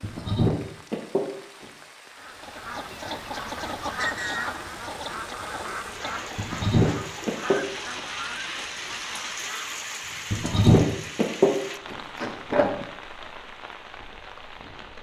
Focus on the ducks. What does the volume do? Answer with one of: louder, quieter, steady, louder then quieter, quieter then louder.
quieter.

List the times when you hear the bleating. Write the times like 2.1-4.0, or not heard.
0.0-1.6, 6.3-8.0, 10.3-12.8.